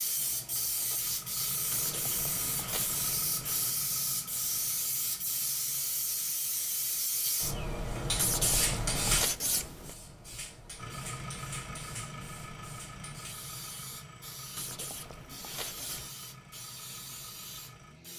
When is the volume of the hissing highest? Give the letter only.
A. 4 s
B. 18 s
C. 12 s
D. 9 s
D.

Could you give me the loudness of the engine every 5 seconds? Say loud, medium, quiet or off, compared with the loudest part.
loud, quiet, loud, medium.